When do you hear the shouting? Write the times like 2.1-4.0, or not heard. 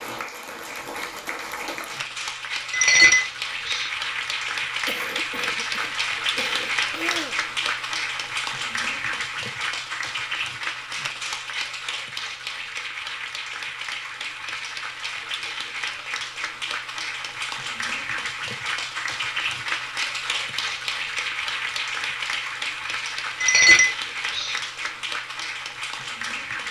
not heard.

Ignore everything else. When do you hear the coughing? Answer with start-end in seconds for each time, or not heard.
4.8-7.3.